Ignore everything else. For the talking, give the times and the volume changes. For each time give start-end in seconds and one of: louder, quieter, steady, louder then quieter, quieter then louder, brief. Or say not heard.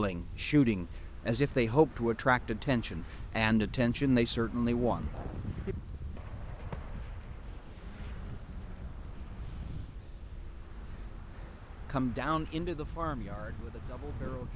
0.0-5.2 steady
11.8-14.5 brief.